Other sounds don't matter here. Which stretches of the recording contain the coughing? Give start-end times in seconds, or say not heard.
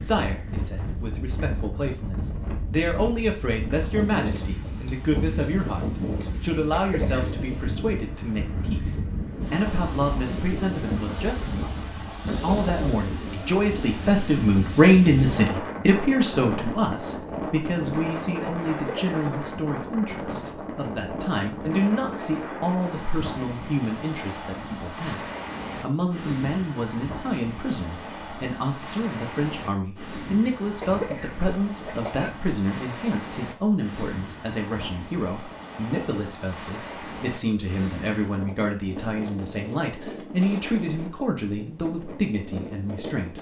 6.7-7.4, 18.6-19.2, 30.8-32.3.